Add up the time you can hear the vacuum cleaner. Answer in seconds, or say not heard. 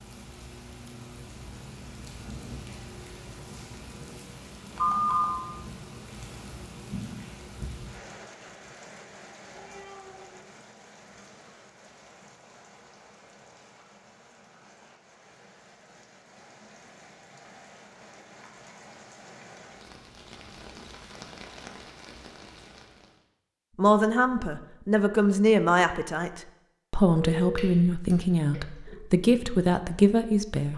not heard.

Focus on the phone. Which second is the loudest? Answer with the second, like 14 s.
5 s.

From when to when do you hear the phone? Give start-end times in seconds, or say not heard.
4.8-5.4, 27.1-28.9.